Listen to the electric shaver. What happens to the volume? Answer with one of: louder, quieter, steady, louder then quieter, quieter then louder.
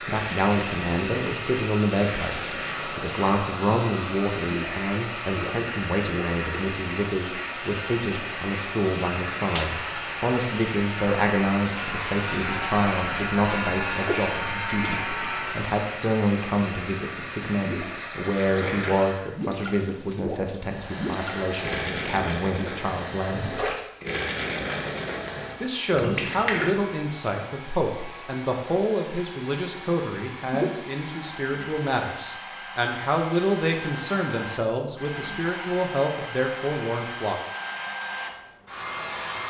louder.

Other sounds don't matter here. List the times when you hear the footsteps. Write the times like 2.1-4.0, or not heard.
not heard.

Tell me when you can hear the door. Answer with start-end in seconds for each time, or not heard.
not heard.